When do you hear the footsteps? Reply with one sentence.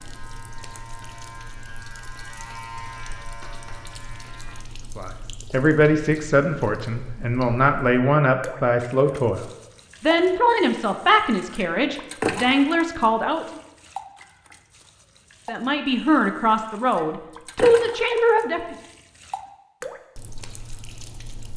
You can't hear the footsteps here.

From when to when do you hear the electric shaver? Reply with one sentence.
The electric shaver can be heard from 0.0 to 4.6 s.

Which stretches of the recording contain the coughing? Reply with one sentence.
The coughing can't be heard in this clip.